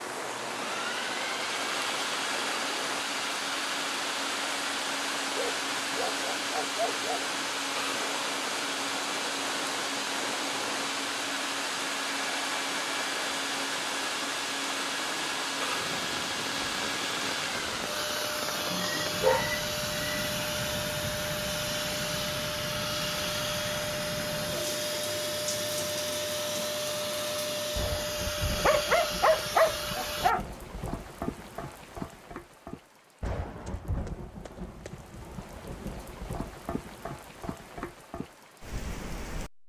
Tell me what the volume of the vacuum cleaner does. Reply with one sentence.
The volume of the vacuum cleaner stays about the same.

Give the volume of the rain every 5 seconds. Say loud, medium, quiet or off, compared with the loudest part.
loud, loud, loud, loud, loud, loud, loud, medium.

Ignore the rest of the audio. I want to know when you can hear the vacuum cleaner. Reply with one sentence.
The vacuum cleaner can be heard from 0.0 to 30.4 s.